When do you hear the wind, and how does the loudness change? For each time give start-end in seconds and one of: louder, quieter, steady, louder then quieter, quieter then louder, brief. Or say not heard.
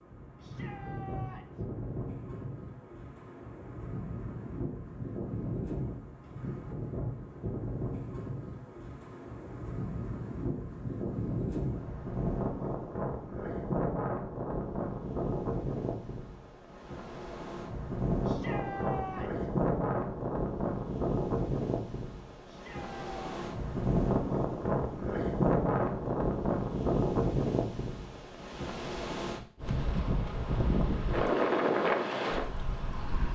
0.0-33.3 louder.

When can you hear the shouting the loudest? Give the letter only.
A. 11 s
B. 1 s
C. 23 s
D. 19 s
D.